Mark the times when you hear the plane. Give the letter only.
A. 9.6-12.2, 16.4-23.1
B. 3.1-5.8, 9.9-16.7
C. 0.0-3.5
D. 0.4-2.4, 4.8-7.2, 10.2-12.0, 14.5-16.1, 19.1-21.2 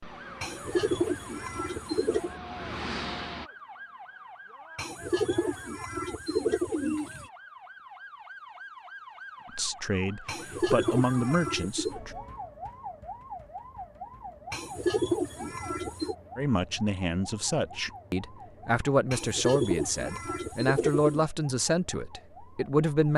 C.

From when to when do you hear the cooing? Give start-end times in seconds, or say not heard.
0.4-2.4, 4.8-7.2, 10.2-12.0, 14.5-16.1, 19.1-21.2.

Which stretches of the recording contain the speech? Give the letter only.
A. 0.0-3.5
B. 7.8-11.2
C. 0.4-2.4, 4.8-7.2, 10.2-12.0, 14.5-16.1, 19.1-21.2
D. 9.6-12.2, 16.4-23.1
D.